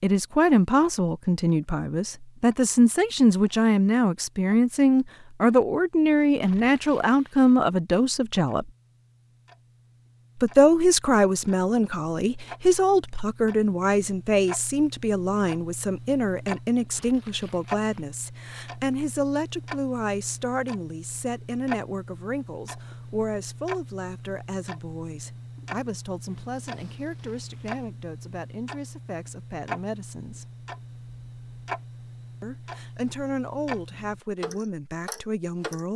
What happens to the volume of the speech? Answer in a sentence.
The volume of the speech goes down.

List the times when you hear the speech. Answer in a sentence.
The speech can be heard from 0.0 to 8.7 s, from 10.4 to 30.4 s and from 32.4 to 35.9 s.